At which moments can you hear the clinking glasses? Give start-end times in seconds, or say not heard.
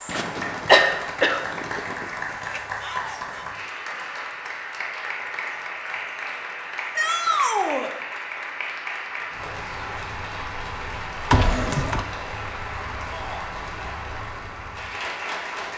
not heard.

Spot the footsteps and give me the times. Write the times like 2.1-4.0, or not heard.
not heard.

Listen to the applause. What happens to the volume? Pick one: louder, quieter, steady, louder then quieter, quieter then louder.
steady.